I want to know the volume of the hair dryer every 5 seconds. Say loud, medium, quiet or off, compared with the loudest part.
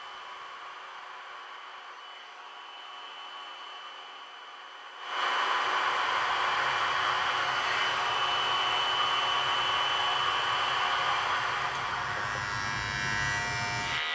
quiet, loud, loud.